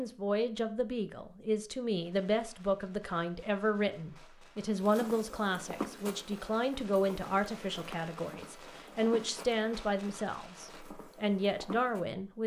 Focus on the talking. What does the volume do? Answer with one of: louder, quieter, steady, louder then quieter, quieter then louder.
steady.